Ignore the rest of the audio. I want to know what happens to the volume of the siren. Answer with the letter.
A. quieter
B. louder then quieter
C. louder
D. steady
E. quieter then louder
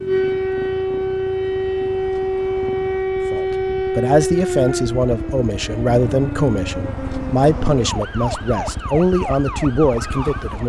A.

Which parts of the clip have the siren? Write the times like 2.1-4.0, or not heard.
0.0-10.6.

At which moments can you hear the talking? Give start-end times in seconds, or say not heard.
3.3-10.6.